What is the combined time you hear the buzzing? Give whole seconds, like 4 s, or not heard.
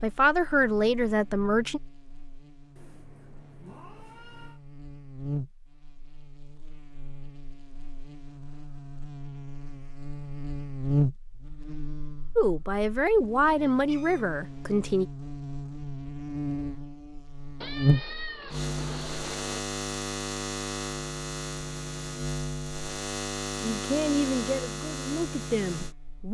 26 s.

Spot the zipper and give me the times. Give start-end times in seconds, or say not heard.
not heard.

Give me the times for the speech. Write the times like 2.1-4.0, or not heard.
0.0-1.8, 12.3-15.1, 23.6-26.2.